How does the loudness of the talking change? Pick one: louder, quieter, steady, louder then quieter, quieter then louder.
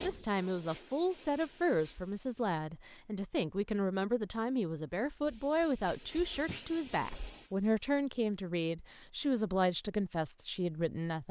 steady.